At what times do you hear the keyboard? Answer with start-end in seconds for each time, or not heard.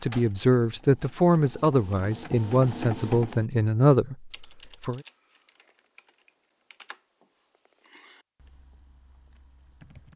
4.3-10.1.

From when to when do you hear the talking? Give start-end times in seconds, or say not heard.
0.0-5.0.